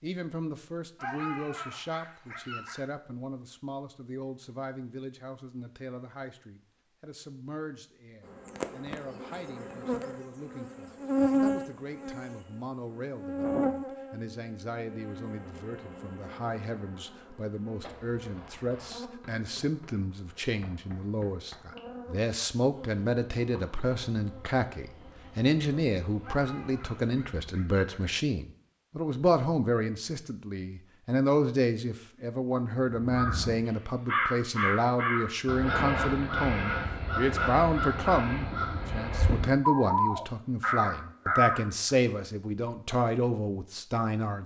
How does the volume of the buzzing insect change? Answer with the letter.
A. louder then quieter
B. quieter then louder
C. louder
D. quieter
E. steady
D.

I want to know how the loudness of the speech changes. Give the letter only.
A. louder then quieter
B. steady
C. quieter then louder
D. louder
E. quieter
D.